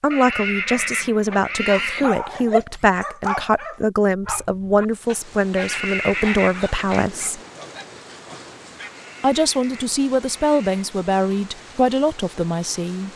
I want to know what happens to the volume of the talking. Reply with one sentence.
The loudness of the talking stays about the same.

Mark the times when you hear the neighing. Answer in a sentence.
You can hear the neighing from 0.1 to 2.1 s, from 5.5 to 7.0 s and from 8.9 to 10.8 s.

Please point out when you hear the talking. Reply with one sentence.
The talking can be heard from 0.0 to 7.4 s and from 9.2 to 13.1 s.